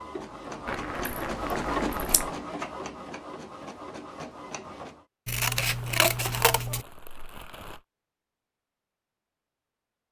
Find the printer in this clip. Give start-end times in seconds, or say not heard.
0.0-5.0.